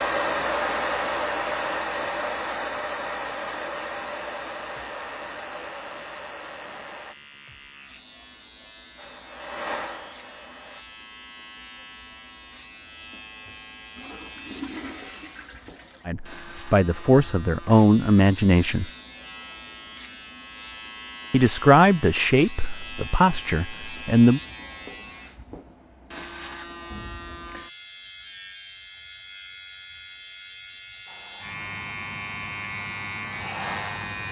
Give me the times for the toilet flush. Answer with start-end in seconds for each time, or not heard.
13.9-16.1.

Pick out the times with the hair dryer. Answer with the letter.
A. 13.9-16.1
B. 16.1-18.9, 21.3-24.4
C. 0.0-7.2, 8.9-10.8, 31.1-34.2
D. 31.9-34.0
C.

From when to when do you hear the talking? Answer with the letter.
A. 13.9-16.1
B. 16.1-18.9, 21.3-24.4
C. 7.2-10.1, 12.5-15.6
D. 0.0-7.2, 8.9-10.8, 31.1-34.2
B.